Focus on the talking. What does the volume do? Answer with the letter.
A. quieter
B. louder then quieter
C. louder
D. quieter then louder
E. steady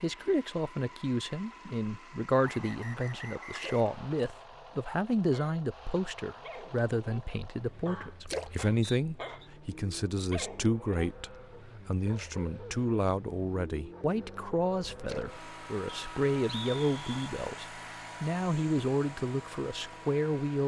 E.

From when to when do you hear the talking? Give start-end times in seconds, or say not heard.
0.0-20.6.